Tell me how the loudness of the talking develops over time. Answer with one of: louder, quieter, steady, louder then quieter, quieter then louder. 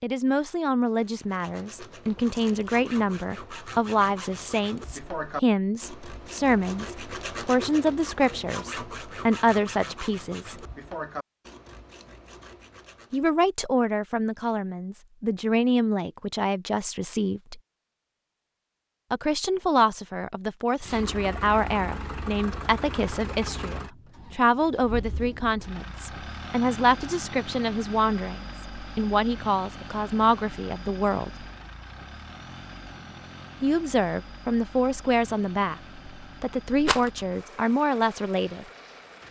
steady.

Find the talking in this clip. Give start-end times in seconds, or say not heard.
0.0-10.7, 13.1-17.6, 19.1-31.4, 33.6-38.6.